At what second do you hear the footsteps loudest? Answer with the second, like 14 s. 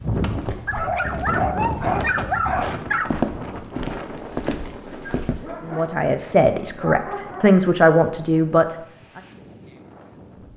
3 s.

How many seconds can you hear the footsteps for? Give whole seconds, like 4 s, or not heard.
5 s.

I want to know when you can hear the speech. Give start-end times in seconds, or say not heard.
5.7-9.2.